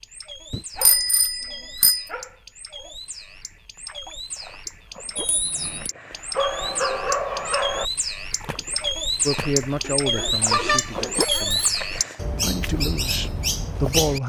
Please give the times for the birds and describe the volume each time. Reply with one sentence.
The birds can be heard from 0.0 to 14.2 s, getting louder.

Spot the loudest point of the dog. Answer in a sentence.
The volume of the dog peaks at 7 seconds.